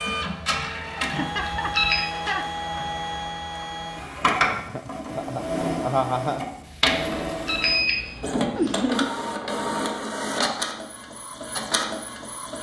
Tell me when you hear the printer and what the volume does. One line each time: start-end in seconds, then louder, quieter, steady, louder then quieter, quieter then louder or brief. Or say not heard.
0.0-12.5 steady.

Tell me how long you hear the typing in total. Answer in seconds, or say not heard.
not heard.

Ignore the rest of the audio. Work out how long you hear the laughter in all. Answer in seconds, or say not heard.
4 s.